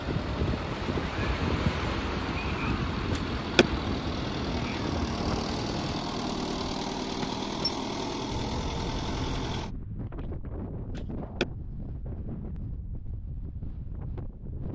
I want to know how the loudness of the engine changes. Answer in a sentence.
The volume of the engine goes up.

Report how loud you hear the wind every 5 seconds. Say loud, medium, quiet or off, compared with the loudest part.
loud, medium, medium.